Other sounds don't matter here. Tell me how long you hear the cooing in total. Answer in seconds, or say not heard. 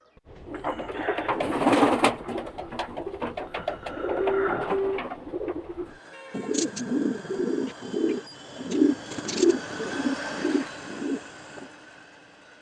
11 s.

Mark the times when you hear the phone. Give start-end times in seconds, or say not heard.
4.2-5.0.